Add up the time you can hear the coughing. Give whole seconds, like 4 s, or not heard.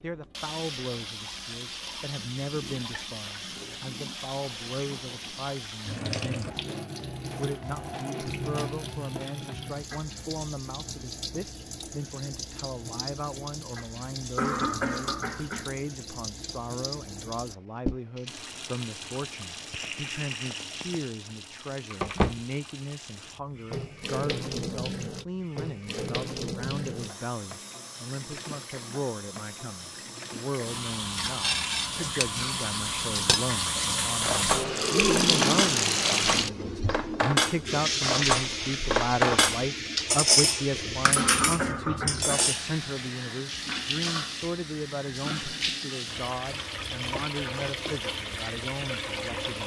3 s.